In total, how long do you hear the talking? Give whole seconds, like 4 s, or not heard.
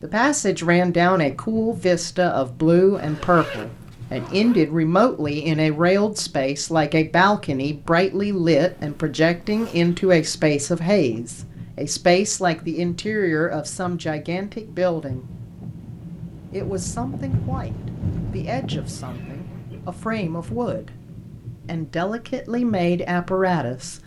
22 s.